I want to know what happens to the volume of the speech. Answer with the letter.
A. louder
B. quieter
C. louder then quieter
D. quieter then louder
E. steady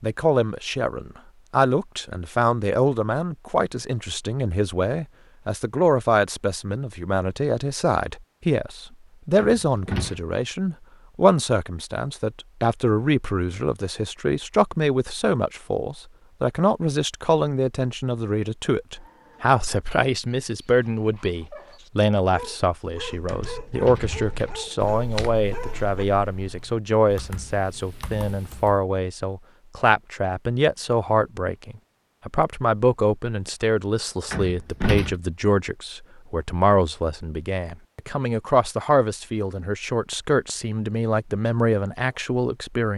E.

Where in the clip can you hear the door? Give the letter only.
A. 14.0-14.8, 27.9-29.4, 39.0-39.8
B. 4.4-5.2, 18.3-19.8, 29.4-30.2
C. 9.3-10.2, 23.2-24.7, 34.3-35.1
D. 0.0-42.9
C.